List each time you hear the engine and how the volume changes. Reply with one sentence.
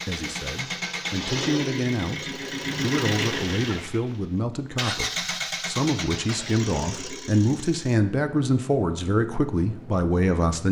The engine can be heard from 0.0 to 10.6 s, getting quieter.